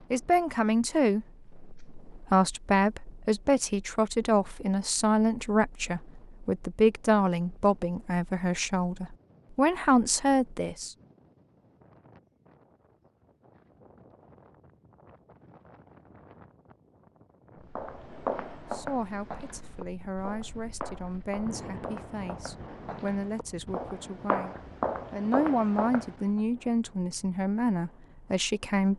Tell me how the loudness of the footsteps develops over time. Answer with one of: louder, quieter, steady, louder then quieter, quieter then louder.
quieter then louder.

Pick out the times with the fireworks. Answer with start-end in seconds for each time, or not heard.
not heard.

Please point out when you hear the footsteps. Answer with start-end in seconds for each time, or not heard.
17.8-26.2.